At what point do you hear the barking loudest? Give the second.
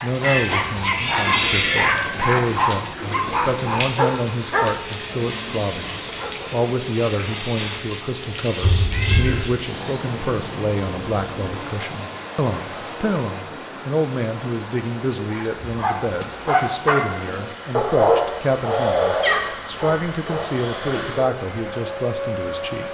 18 s.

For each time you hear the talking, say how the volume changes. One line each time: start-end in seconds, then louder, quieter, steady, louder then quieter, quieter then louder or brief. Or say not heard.
0.0-22.8 steady.